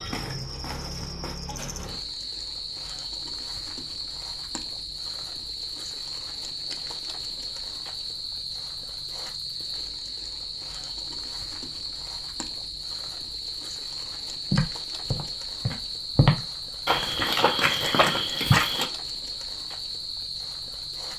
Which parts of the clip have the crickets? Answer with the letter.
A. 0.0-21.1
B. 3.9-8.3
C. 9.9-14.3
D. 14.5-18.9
A.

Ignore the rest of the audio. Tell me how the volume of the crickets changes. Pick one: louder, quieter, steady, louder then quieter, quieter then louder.
steady.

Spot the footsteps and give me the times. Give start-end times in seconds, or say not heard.
14.5-18.9.